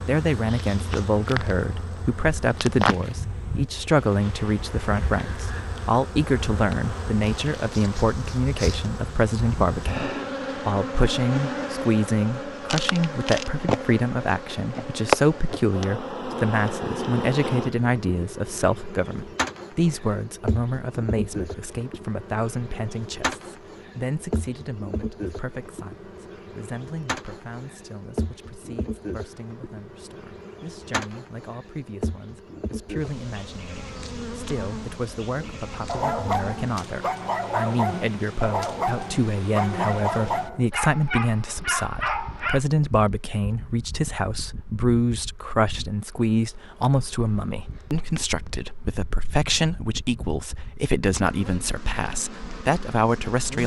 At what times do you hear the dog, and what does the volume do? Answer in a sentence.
The dog can be heard from 35.4 to 42.6 s, at a steady volume.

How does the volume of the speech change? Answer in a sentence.
The loudness of the speech goes down, then up.